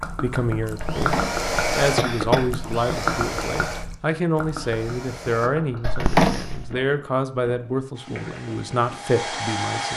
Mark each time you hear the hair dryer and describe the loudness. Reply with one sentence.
The hair dryer can be heard from 0.0 to 5.5 s, getting louder then quieter; and briefly from 7.9 to 9.9 s.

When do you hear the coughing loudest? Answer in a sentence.
The volume of the coughing peaks at 6 seconds.